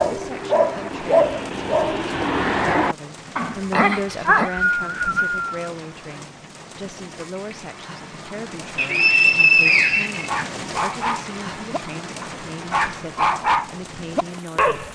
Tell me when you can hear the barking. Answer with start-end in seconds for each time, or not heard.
0.0-4.5, 10.2-14.9.